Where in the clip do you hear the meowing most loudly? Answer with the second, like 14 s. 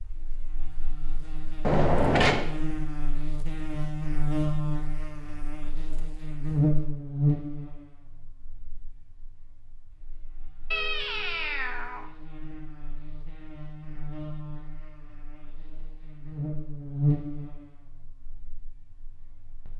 2 s.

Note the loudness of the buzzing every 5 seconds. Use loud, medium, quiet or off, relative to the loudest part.
loud, loud, quiet, loud.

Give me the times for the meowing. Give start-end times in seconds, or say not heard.
1.6-2.5, 10.7-12.1.